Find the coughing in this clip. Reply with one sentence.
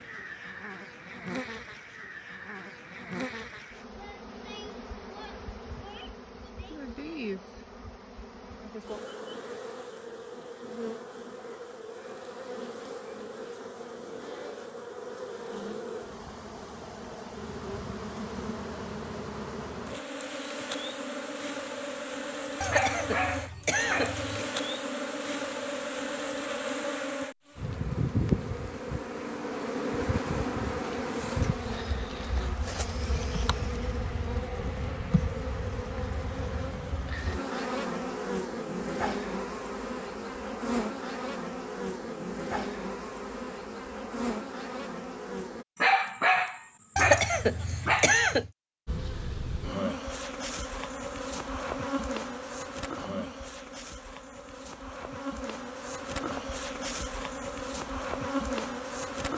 The coughing can be heard from 22.6 to 24.4 s and from 47.0 to 48.5 s.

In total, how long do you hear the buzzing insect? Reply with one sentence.
You can hear the buzzing insect for 56 seconds altogether.